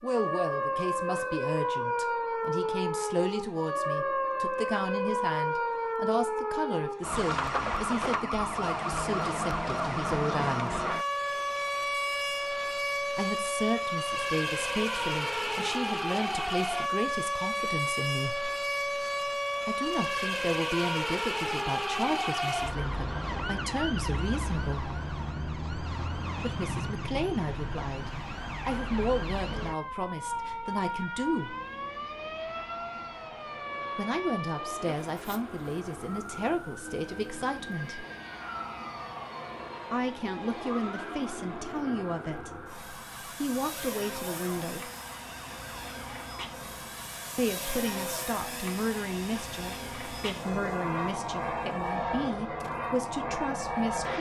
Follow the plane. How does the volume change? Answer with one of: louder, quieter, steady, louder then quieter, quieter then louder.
louder.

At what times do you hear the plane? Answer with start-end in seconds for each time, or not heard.
31.2-54.1.